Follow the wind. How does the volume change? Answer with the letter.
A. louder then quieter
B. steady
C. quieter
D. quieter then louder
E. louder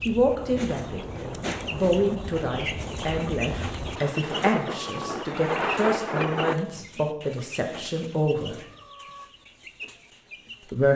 E.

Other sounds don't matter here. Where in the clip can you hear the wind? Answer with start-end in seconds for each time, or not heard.
0.0-6.7.